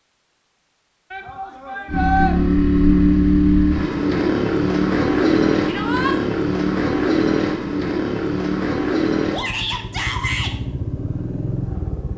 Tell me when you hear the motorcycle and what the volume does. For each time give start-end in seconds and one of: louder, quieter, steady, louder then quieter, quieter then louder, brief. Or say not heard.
1.9-12.1 quieter.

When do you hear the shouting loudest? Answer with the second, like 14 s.
2 s.